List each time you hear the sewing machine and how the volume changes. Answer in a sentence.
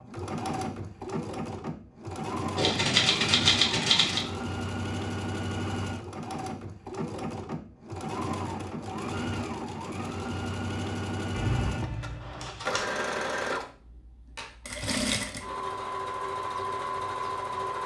The sewing machine can be heard from 0.0 to 17.8 s, at a steady volume.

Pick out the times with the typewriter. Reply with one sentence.
You can hear the typewriter from 2.5 to 4.2 s and from 11.3 to 12.8 s.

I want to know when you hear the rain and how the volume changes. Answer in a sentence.
The rain can't be heard in this clip.